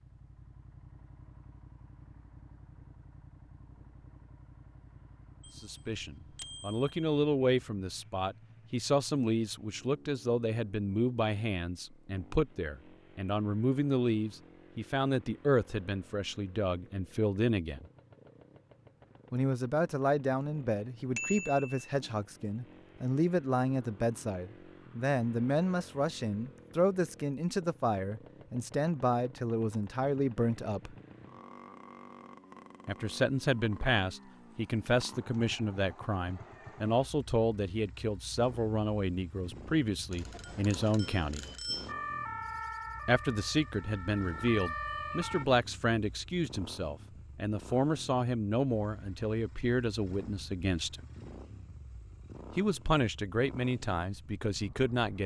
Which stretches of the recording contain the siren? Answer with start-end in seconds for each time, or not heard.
41.9-45.5.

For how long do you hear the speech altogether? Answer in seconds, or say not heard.
43 s.